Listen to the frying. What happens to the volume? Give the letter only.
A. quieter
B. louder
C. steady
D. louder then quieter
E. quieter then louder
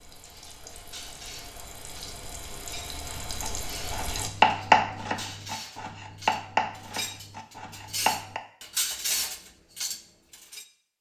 B.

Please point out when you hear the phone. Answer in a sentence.
You can't hear the phone here.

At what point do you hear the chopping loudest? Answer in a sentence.
The volume of the chopping peaks at 5 seconds.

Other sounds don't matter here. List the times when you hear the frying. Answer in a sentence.
The frying can be heard from 0.0 to 4.3 s.